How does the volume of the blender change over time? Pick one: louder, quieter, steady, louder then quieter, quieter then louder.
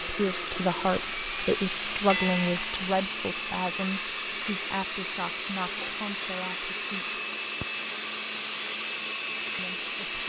steady.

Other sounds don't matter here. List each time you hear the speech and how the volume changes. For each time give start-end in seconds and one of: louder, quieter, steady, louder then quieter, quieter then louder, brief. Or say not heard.
0.0-7.2 quieter
9.6-10.2 brief.